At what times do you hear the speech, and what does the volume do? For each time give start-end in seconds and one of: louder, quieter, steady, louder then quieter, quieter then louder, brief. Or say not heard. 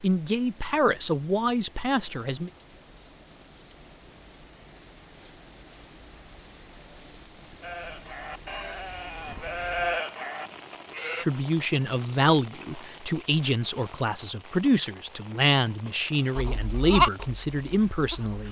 0.0-2.5 brief
11.2-18.4 steady.